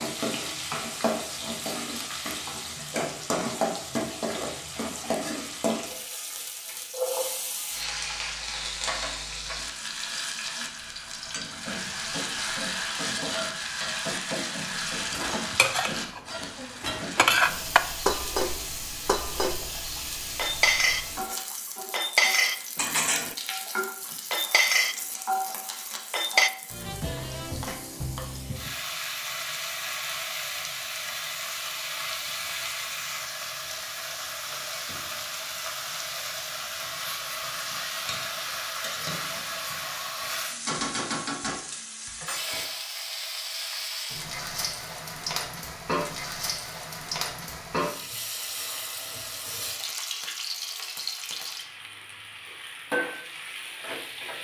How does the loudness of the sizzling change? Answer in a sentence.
The volume of the sizzling stays about the same.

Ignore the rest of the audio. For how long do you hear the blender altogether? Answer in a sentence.
The blender can't be heard in this clip.